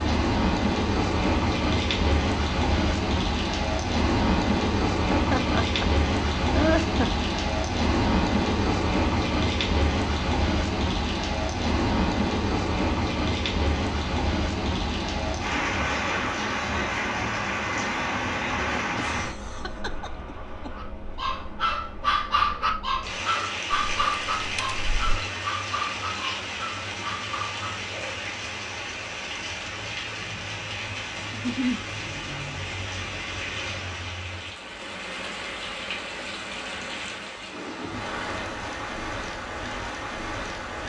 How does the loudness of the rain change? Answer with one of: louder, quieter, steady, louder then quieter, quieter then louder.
quieter.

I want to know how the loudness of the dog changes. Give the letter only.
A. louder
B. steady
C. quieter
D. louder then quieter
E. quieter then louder
C.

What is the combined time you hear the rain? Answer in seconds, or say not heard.
41 s.